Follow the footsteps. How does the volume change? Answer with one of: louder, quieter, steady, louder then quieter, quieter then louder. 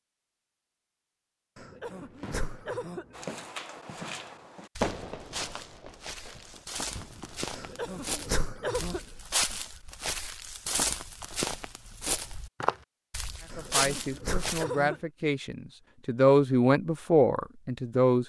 louder.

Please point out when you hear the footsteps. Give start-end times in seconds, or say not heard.
3.1-14.7.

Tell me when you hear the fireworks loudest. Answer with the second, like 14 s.
5 s.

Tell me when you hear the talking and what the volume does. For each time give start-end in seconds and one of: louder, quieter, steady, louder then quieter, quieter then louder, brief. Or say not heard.
13.6-18.2 louder.